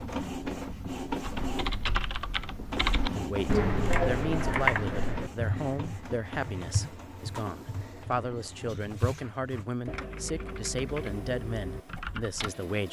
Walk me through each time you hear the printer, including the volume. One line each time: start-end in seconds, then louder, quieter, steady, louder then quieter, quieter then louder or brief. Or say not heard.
0.0-12.8 quieter.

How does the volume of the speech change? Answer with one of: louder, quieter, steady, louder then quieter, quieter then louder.
steady.